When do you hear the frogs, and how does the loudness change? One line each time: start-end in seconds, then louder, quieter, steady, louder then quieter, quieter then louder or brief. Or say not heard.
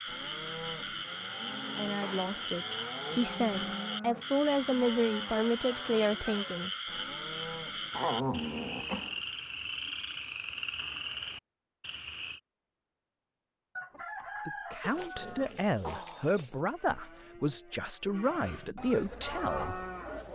0.0-12.4 steady.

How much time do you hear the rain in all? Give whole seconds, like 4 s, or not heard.
not heard.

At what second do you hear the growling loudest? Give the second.
8 s.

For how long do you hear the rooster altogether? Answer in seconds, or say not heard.
2 s.